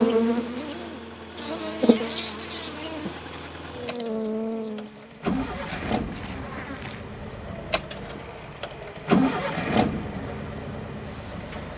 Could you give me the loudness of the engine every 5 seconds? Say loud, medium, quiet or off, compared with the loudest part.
quiet, loud, medium.